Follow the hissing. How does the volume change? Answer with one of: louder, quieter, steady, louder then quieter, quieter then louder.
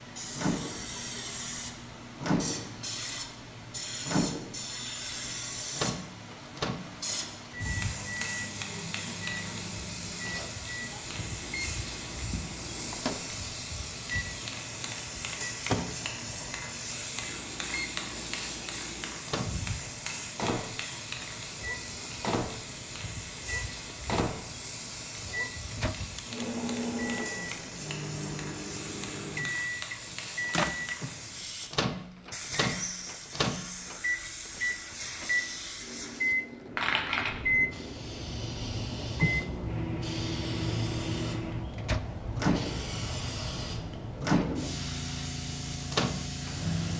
steady.